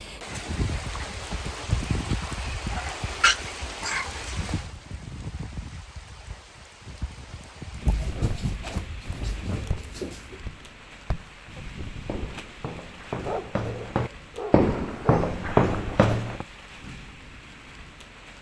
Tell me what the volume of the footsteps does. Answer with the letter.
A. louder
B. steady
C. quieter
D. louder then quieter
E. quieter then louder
A.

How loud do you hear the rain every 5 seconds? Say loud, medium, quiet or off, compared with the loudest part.
loud, medium, medium, medium.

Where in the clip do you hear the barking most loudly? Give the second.
3 s.